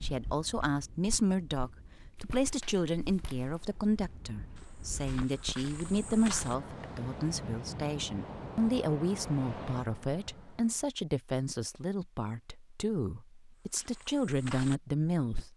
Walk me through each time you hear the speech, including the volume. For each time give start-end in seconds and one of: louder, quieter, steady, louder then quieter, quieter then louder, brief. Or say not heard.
0.0-15.5 steady.